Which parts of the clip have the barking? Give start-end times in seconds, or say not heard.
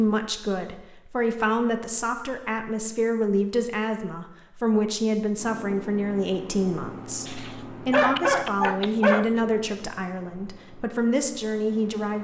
7.2-9.3.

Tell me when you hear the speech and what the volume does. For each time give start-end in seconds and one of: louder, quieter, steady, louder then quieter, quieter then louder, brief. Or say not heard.
0.0-12.1 steady.